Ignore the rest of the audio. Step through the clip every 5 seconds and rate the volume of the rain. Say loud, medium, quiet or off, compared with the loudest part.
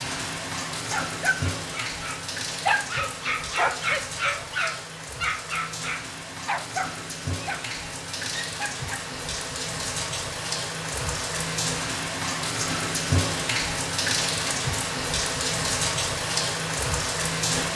medium, medium, loud, loud.